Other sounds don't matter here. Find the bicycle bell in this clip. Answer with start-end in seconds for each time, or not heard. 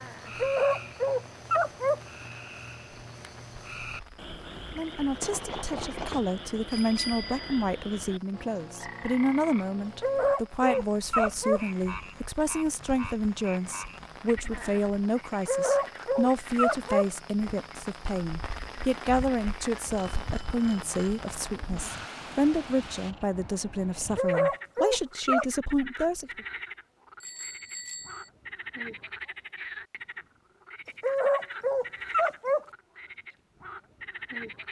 5.2-7.7, 19.9-21.2, 27.2-28.3.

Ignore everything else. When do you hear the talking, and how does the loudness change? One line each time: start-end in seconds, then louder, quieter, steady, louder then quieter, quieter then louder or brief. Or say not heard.
4.8-26.4 steady.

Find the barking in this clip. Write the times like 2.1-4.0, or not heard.
0.3-2.0, 10.0-11.7, 15.4-17.1, 24.1-25.4, 31.0-32.6.